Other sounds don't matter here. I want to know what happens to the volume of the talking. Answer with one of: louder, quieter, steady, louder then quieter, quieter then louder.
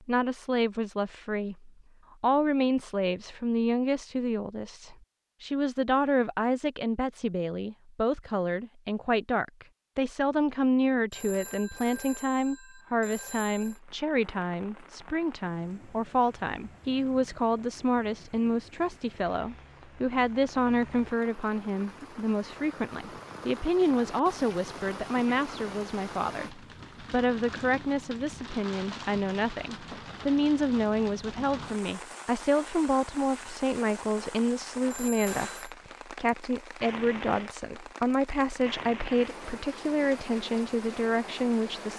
steady.